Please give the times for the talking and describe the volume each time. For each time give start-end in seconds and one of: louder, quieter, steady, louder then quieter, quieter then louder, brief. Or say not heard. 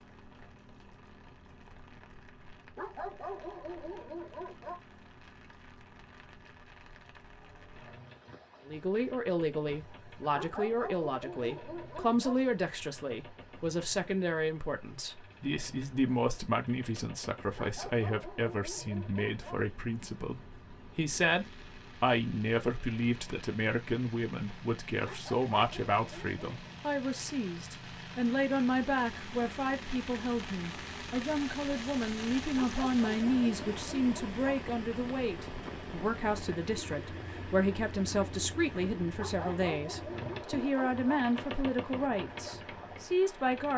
8.7-43.7 steady.